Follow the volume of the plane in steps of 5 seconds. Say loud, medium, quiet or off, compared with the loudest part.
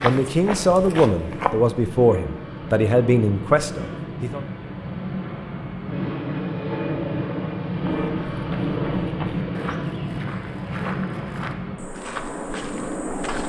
medium, loud, loud.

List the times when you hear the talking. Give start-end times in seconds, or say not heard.
0.0-4.4.